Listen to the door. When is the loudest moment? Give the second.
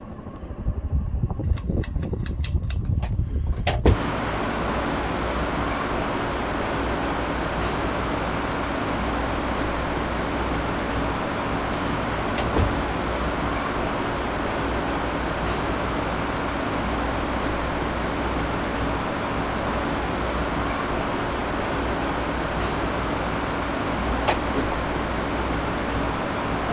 4 s.